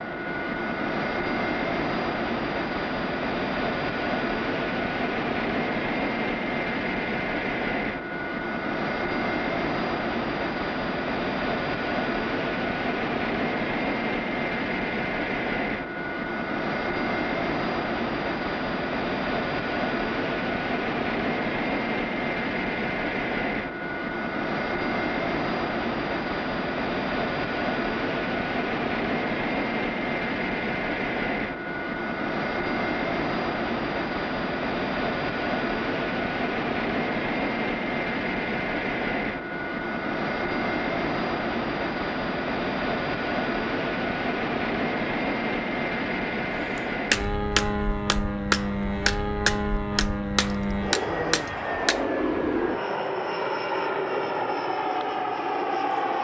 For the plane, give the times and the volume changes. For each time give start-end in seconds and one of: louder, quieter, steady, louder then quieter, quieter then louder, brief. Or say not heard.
0.0-56.1 steady.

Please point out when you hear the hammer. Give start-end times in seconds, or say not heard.
46.8-52.0.